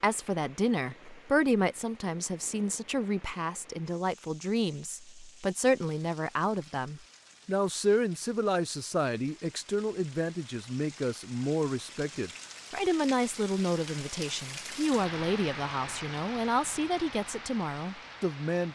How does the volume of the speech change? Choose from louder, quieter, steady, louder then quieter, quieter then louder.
steady.